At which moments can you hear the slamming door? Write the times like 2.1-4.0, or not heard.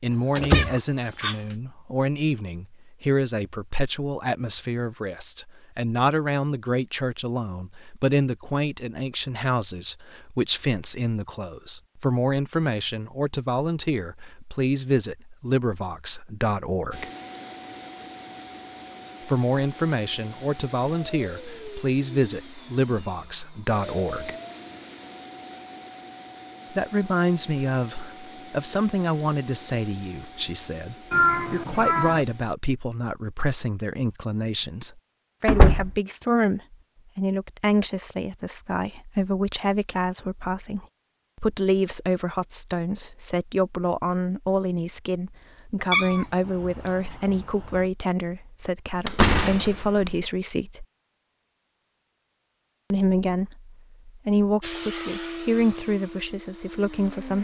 0.3-0.8, 35.5-36.0, 48.9-50.2.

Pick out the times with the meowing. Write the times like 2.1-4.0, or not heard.
0.5-1.6, 31.1-32.2, 45.9-47.9.